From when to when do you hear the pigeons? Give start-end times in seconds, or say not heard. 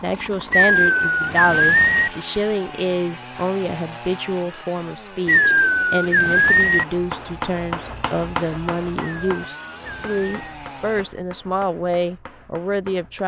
0.5-2.1, 5.2-6.8, 9.1-10.4.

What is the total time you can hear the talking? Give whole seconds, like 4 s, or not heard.
13 s.